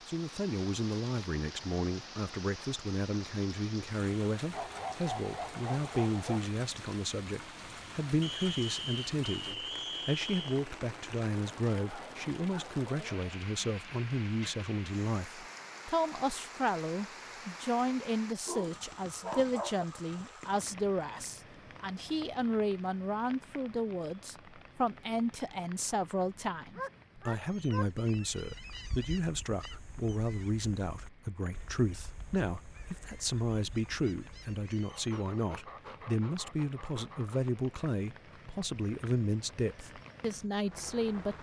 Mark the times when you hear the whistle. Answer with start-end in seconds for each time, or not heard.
8.2-10.7.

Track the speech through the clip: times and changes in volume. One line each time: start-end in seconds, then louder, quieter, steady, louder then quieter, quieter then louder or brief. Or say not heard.
0.1-41.3 steady.